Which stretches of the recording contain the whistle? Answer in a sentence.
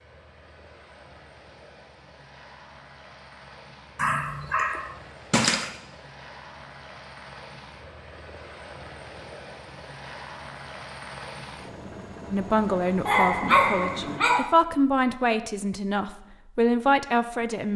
You can't hear the whistle here.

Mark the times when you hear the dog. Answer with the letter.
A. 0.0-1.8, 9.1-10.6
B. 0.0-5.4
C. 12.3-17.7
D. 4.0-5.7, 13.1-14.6
D.